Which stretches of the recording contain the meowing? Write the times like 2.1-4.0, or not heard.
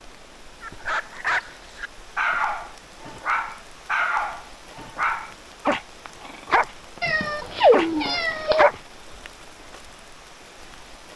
7.0-8.7.